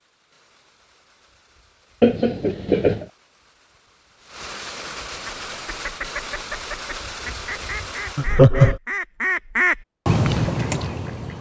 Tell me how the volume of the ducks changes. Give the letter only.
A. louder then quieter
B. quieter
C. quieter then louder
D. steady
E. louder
E.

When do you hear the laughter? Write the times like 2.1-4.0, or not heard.
2.0-3.0, 8.2-8.8.